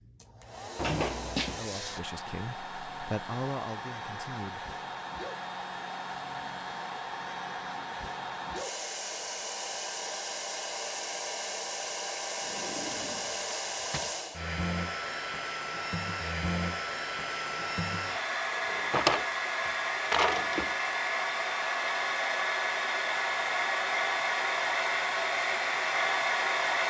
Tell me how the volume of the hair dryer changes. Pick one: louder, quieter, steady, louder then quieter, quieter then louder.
louder.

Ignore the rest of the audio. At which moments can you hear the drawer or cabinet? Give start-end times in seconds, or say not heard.
0.8-1.6, 12.4-14.2, 18.6-20.7.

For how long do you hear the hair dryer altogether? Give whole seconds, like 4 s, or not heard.
27 s.